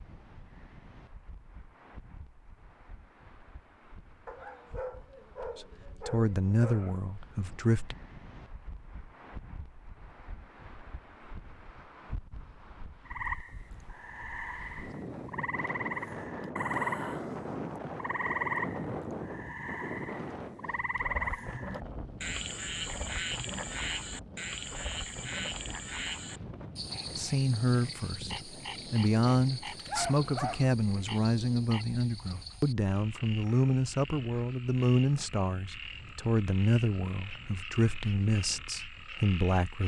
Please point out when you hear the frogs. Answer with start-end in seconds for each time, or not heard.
13.1-39.8.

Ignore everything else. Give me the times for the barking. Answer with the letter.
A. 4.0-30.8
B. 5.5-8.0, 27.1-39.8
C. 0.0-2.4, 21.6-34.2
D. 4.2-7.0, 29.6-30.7
D.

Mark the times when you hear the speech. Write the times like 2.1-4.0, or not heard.
5.5-8.0, 27.1-39.8.